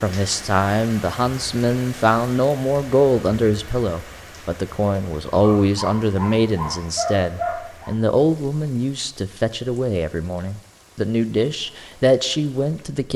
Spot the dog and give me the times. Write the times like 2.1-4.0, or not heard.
5.4-8.0.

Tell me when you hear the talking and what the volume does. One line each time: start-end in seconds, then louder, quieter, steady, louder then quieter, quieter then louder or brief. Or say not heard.
0.0-13.1 steady.